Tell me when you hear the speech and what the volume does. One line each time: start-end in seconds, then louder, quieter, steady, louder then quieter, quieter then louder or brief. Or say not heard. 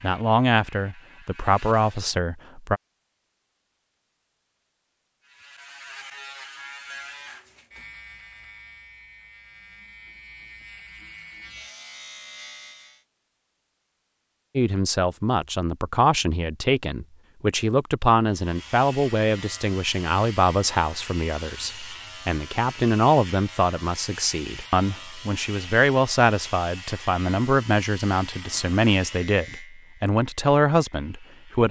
0.0-2.8 brief
14.6-31.6 steady.